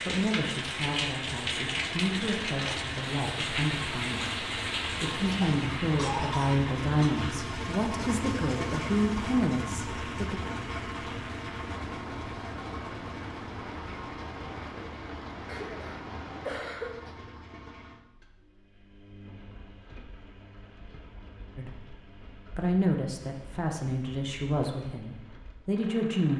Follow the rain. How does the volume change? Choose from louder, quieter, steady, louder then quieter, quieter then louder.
quieter.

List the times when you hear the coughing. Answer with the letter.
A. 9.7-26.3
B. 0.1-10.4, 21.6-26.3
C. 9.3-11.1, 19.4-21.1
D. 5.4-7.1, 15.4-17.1
D.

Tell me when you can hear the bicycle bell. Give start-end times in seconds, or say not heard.
not heard.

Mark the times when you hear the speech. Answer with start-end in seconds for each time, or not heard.
0.1-10.4, 21.6-26.3.